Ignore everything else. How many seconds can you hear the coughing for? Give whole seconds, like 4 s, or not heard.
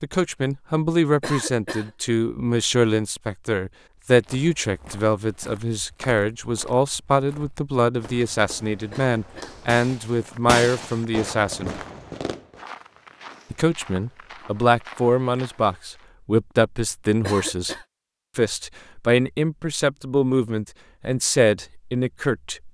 2 s.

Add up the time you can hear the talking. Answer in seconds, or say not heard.
20 s.